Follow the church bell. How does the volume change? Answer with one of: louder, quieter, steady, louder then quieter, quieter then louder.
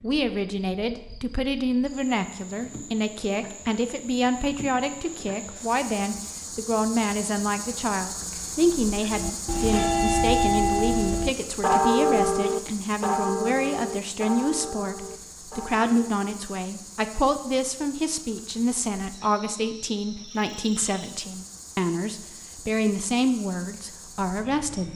quieter.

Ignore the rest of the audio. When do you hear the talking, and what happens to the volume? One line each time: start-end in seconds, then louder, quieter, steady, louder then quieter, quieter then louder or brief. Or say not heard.
0.0-24.9 steady.